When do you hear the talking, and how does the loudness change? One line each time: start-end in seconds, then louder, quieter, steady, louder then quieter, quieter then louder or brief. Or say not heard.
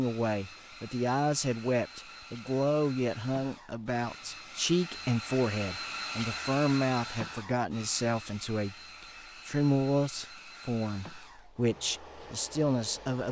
0.0-13.2 steady.